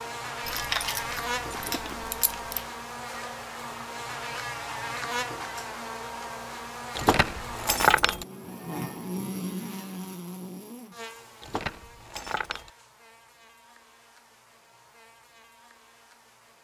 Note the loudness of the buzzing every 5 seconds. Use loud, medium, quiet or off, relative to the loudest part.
loud, loud, medium, quiet.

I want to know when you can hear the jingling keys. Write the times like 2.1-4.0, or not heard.
0.5-2.6, 7.0-8.2, 11.4-12.7.